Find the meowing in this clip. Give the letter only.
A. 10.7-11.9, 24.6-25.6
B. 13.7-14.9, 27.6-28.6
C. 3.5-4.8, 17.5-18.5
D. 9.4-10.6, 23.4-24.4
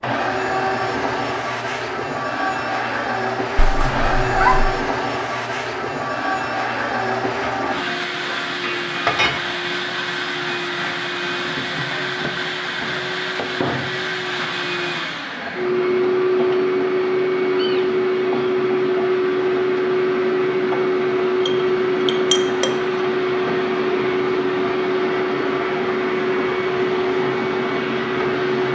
C.